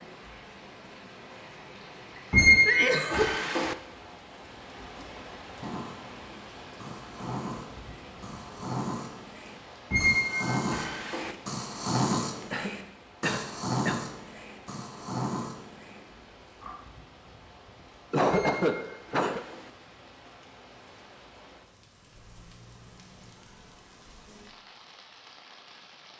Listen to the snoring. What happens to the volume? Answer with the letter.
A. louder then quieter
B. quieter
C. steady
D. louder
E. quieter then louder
A.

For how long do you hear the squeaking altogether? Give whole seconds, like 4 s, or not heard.
4 s.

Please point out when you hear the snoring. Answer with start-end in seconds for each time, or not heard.
5.6-16.8.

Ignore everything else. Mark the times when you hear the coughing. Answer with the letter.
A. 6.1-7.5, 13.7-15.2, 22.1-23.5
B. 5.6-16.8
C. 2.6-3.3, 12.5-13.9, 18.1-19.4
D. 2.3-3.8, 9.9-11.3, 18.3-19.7
C.